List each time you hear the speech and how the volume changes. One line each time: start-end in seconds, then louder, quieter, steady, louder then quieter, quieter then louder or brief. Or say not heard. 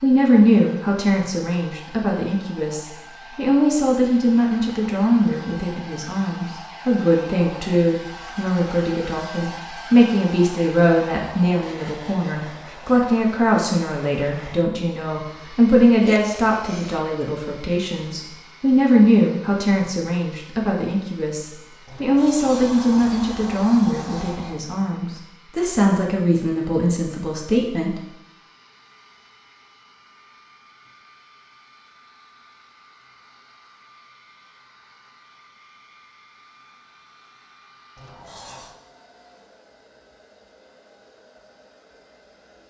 0.0-28.0 steady.